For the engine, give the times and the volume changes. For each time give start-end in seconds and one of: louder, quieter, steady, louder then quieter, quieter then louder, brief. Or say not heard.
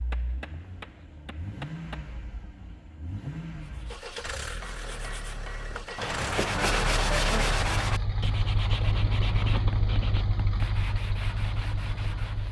0.0-12.4 louder.